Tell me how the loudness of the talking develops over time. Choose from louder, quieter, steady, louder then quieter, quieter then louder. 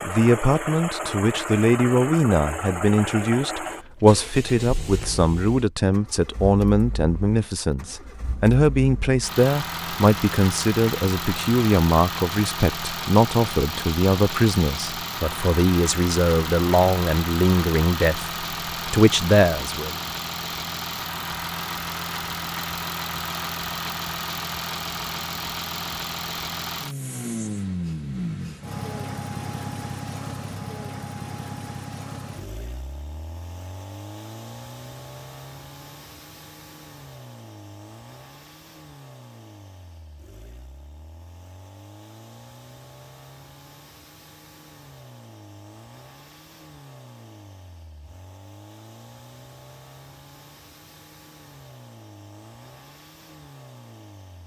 steady.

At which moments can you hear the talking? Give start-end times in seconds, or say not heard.
0.0-19.9.